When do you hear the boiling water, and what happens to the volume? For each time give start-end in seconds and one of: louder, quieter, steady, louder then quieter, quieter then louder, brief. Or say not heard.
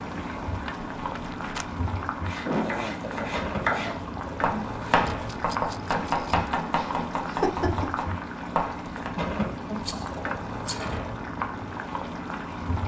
0.0-12.8 steady.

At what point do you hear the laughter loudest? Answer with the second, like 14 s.
3 s.